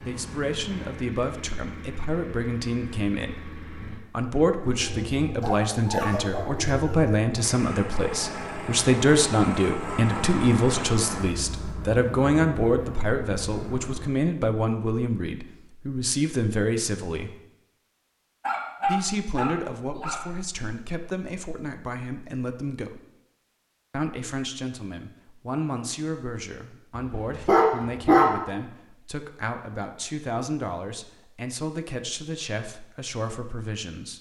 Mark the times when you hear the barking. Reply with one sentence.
You can hear the barking from 5.4 to 6.8 s, from 18.4 to 20.2 s and from 26.9 to 28.3 s.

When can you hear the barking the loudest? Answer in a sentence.
The volume of the barking peaks at 28 seconds.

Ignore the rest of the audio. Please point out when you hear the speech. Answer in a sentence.
You can hear the speech from 0.0 to 17.4 s, from 18.9 to 23.1 s and from 23.9 to 34.1 s.